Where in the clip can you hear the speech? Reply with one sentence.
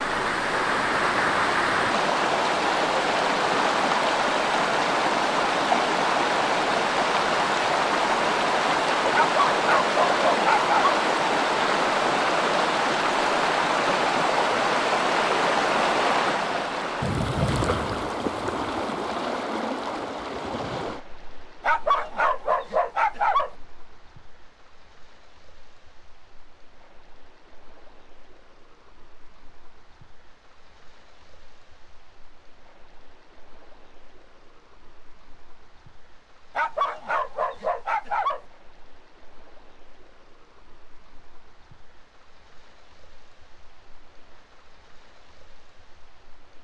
The speech can't be heard in this clip.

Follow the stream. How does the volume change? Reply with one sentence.
The loudness of the stream goes down.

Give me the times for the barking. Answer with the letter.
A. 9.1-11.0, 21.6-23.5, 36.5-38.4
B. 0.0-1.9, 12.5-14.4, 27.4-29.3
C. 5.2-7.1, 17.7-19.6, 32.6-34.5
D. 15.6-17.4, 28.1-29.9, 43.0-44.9
A.